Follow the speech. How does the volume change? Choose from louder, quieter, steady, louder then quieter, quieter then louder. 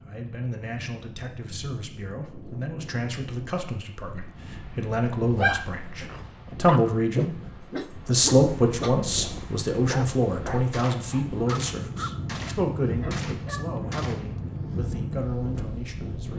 louder then quieter.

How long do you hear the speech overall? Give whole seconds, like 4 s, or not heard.
16 s.